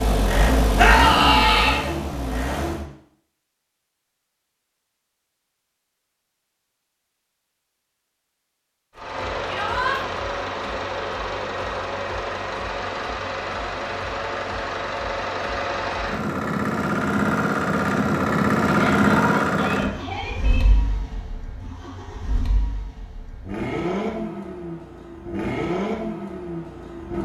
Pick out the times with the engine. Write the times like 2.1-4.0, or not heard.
0.0-2.9, 8.9-27.2.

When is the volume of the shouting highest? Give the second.
1 s.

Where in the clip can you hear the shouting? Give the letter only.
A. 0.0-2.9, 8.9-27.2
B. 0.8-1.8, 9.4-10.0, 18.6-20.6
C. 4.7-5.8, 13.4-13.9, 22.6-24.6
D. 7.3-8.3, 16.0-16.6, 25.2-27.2
B.